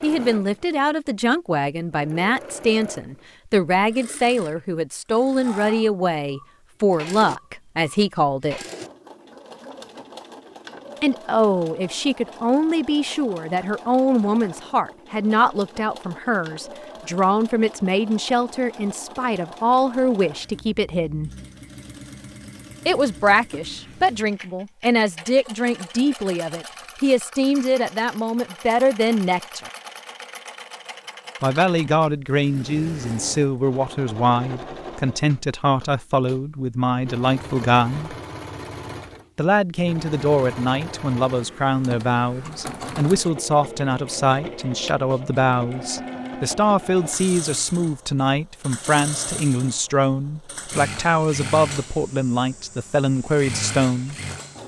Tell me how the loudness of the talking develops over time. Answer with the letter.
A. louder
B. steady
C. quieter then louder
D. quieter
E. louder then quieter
B.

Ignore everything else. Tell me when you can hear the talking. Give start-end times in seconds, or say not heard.
0.0-8.6, 11.0-21.3, 22.9-29.7, 31.4-38.1, 39.4-54.1.